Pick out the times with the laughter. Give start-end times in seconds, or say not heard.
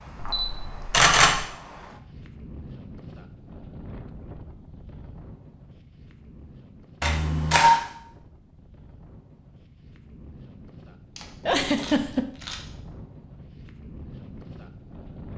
11.4-12.2.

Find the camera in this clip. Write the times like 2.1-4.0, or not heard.
0.2-1.4, 7.0-7.8, 11.2-12.6.